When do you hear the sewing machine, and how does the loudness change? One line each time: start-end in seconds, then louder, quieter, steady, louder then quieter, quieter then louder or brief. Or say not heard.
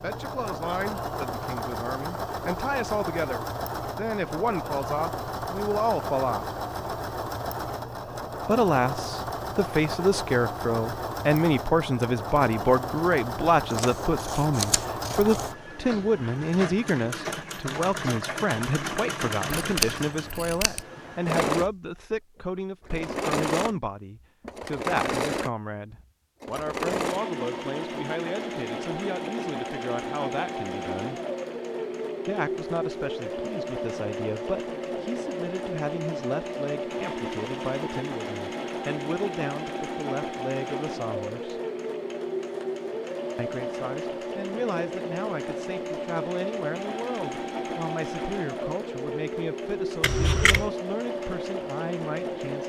0.0-52.6 steady.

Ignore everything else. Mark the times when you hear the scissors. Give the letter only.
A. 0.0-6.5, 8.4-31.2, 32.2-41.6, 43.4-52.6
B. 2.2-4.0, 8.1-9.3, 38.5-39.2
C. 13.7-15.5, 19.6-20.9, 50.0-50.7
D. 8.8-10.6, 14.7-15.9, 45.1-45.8
C.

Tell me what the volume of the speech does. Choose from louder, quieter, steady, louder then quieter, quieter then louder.
quieter.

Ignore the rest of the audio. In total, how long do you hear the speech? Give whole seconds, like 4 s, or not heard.
48 s.